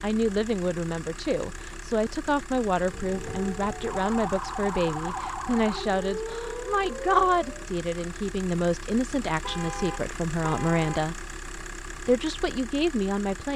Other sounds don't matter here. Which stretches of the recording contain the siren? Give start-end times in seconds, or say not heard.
2.8-7.7.